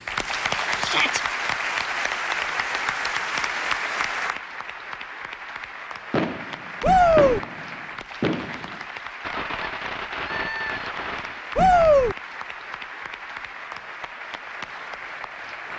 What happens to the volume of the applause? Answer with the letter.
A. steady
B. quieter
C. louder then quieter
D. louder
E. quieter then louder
B.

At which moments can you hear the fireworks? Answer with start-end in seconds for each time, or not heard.
6.1-11.4.